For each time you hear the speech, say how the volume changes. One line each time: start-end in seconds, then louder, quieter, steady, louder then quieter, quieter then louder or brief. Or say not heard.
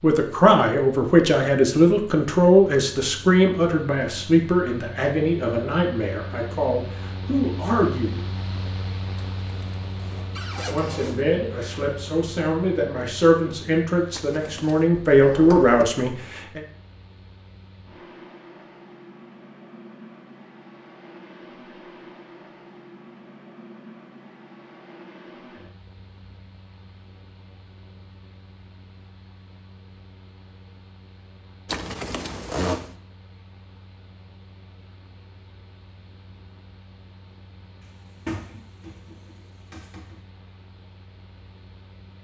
0.0-8.2 quieter
10.7-16.6 louder.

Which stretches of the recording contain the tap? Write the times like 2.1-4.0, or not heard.
not heard.